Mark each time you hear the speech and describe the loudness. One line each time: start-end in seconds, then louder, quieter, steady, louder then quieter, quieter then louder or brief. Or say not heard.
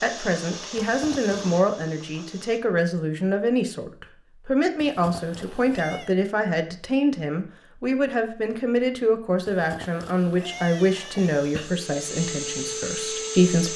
0.0-13.7 steady.